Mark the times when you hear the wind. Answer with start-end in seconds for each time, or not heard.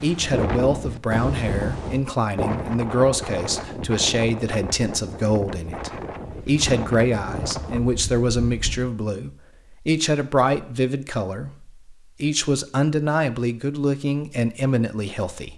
0.0-8.9.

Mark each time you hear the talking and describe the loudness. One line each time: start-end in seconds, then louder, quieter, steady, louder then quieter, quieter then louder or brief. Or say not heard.
0.0-15.5 steady.